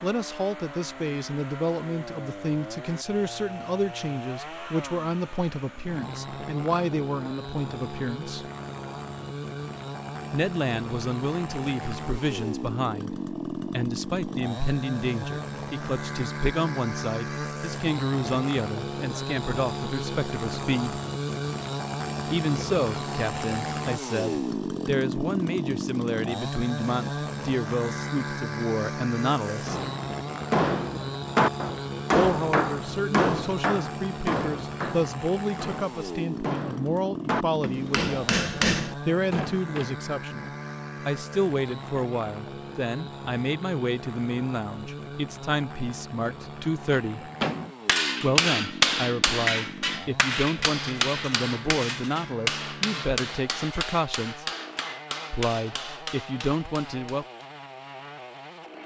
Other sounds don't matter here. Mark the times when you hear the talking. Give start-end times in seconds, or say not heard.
0.0-8.5, 10.3-21.0, 22.3-29.8, 32.1-47.3, 48.2-54.5, 55.3-57.2.